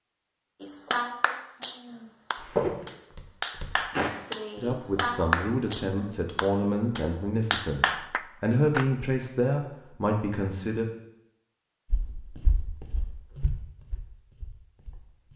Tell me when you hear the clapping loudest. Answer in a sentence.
The loudest moment of the clapping is at 5 seconds.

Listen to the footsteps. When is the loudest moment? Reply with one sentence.
The volume of the footsteps peaks at 3 seconds.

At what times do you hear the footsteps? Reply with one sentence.
The footsteps can be heard from 2.5 to 4.1 s and from 11.9 to 15.3 s.